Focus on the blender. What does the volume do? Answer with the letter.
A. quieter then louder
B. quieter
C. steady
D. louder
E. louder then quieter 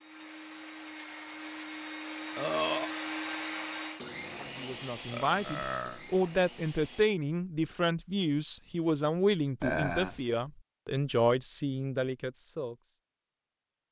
E.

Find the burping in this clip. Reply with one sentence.
The burping can be heard from 2.4 to 2.9 s, from 5.1 to 6.0 s and from 9.6 to 10.2 s.